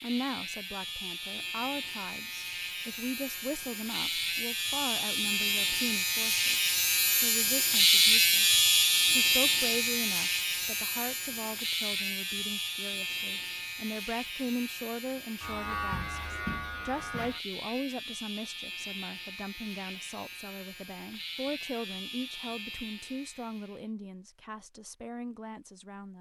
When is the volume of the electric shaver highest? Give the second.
8 s.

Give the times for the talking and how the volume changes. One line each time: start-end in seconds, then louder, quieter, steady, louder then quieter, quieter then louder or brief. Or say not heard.
0.0-26.1 steady.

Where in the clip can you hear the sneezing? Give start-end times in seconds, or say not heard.
not heard.